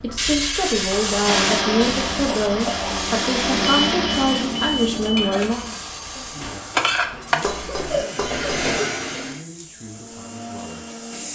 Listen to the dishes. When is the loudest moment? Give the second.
7 s.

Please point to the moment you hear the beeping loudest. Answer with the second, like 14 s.
4 s.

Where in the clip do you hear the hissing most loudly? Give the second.
1 s.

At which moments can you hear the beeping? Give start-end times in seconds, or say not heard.
3.6-5.5.